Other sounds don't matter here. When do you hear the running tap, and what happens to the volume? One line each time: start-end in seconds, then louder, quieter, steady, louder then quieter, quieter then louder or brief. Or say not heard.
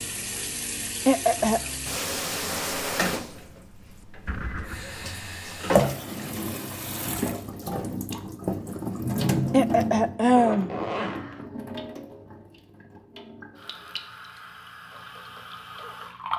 0.0-16.3 quieter.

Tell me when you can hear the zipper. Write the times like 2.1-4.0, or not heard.
4.2-5.2, 10.3-11.4.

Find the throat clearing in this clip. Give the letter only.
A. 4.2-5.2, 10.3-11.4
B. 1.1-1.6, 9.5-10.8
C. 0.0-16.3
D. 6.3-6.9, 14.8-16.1
B.